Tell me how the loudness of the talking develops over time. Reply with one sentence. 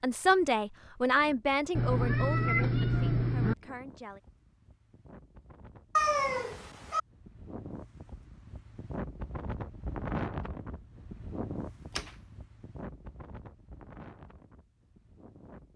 The loudness of the talking goes down.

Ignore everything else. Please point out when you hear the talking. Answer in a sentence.
You can hear the talking from 0.0 to 4.2 s.